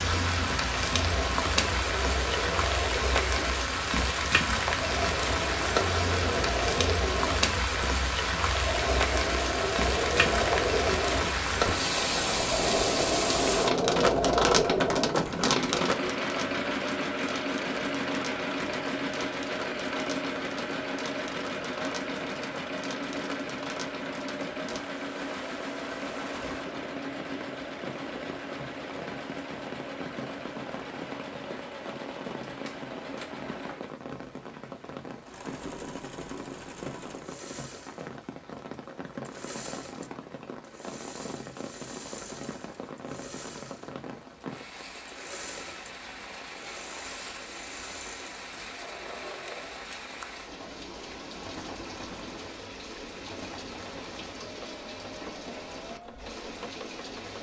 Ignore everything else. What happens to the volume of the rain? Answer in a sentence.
The loudness of the rain goes down.